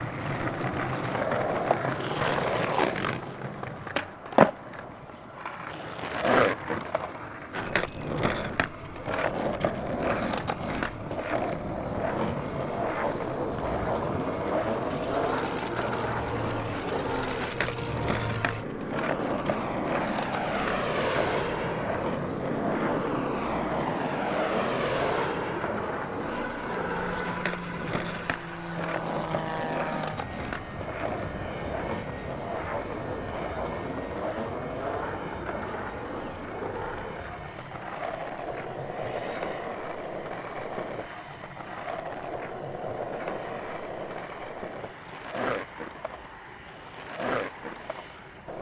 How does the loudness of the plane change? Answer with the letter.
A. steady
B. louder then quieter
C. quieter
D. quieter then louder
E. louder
B.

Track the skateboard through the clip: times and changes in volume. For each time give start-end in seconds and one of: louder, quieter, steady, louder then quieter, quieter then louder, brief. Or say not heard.
0.0-48.5 quieter.